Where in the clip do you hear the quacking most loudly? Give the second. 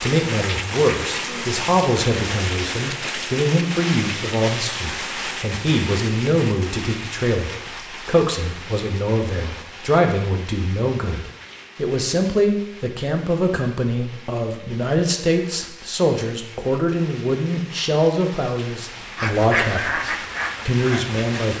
20 s.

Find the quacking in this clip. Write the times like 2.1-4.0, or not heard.
19.1-21.4.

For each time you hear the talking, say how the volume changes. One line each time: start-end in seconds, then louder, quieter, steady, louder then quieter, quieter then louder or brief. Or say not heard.
0.0-21.5 steady.